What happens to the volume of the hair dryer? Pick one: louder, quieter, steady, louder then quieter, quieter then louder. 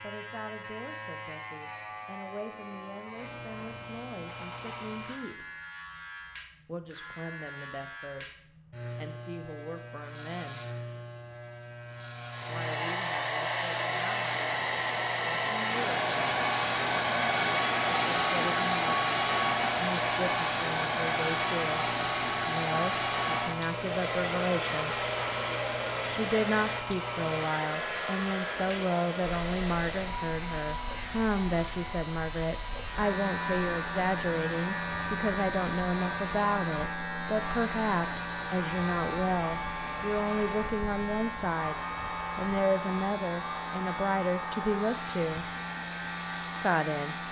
quieter.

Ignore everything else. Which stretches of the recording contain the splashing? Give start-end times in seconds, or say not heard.
not heard.